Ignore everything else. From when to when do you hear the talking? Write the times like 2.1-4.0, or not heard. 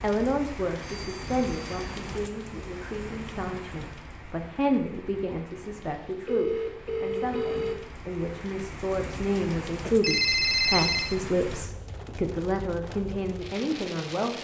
0.0-14.4.